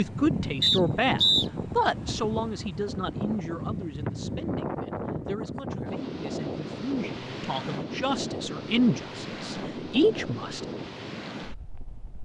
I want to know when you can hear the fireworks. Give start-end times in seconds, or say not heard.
not heard.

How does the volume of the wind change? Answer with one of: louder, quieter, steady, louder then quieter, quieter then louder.
steady.